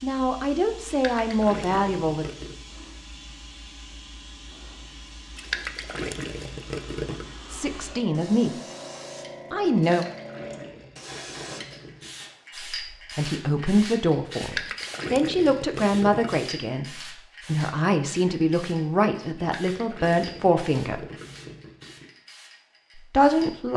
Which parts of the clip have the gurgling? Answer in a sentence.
The gurgling can be heard from 0.8 to 2.5 s, from 5.3 to 7.3 s, from 9.8 to 12.3 s, from 14.4 to 16.5 s and from 19.4 to 22.1 s.